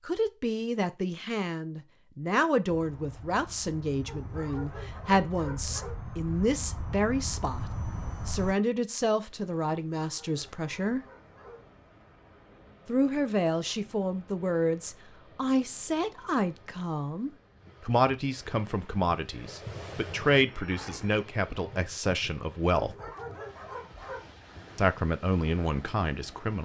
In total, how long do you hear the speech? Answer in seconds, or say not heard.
22 s.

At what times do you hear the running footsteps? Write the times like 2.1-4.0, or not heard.
not heard.